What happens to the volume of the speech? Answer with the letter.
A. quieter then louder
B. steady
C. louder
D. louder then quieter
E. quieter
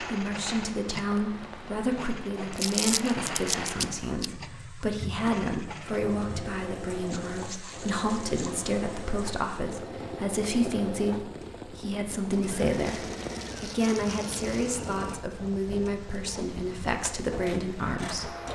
B.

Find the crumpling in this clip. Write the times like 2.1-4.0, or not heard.
2.5-4.3, 7.1-8.7, 12.7-14.7.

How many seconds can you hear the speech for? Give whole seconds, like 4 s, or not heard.
18 s.